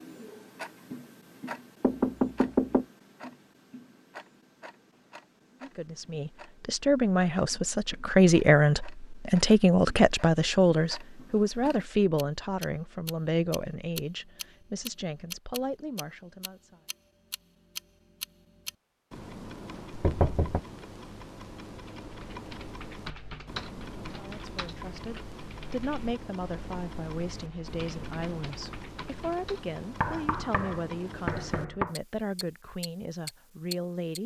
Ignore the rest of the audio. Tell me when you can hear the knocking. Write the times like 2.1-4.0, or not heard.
1.8-2.9, 19.9-20.6, 30.0-31.9.